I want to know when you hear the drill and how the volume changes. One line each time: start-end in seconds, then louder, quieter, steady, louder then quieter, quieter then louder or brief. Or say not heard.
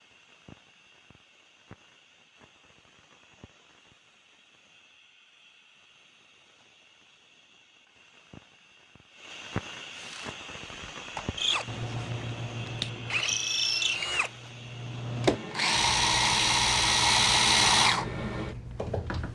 9.9-19.3 louder.